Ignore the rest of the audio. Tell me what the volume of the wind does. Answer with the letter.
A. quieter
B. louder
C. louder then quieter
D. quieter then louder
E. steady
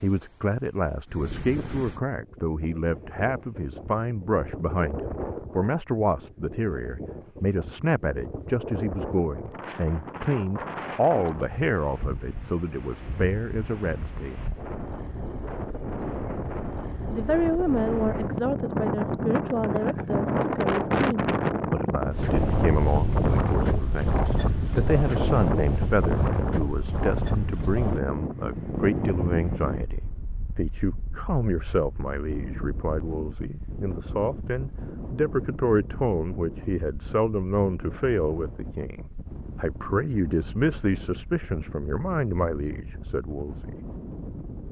C.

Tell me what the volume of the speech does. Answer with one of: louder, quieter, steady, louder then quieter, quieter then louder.
steady.